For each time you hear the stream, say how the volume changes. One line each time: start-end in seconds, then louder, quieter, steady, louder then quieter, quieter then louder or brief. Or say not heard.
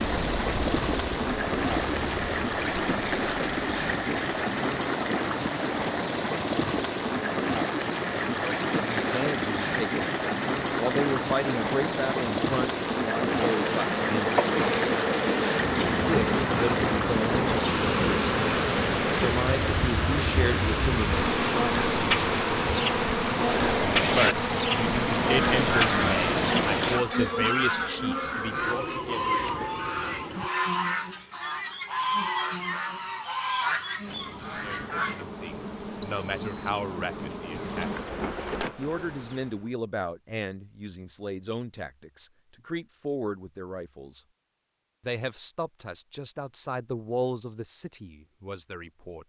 0.0-27.1 steady.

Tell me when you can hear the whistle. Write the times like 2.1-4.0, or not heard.
36.0-36.8.